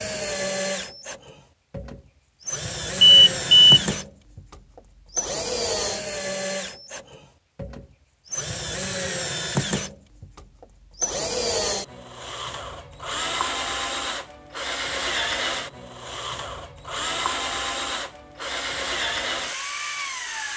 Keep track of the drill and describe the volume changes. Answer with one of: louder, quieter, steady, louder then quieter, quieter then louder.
steady.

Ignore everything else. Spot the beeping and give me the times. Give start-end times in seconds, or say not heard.
3.0-3.8.